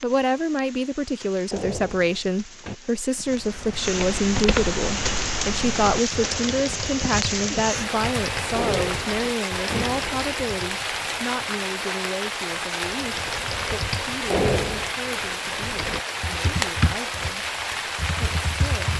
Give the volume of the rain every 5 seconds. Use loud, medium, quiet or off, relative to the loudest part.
medium, loud, loud, loud.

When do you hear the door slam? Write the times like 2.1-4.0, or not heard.
1.5-2.8, 8.6-10.2, 14.3-14.9.